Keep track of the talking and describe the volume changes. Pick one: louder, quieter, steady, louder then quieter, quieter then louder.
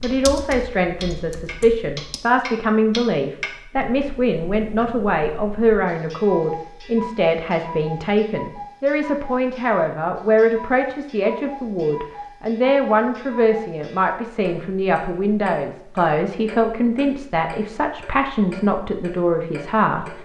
steady.